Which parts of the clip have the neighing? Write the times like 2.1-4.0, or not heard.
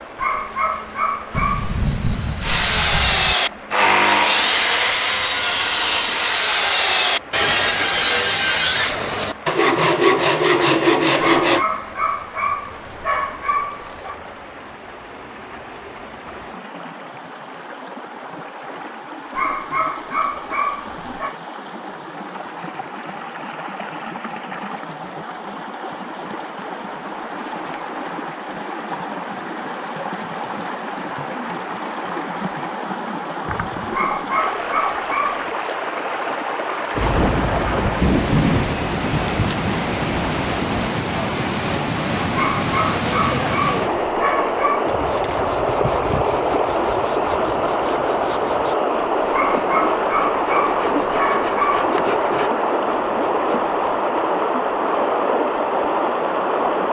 not heard.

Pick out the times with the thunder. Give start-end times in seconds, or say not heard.
1.3-3.4, 37.0-40.9.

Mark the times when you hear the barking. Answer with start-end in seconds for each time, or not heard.
0.1-1.8, 11.2-14.2, 19.3-21.4, 33.9-35.5, 42.3-44.9, 49.3-51.9.